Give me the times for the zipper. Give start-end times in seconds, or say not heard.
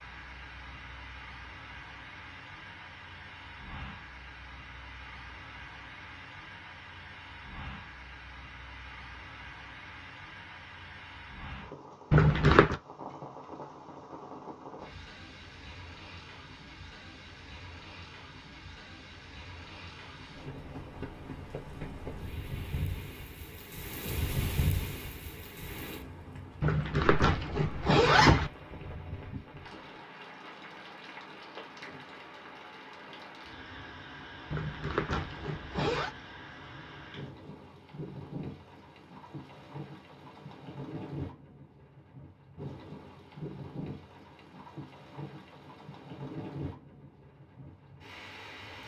12.1-12.8, 26.6-28.5, 34.5-36.1.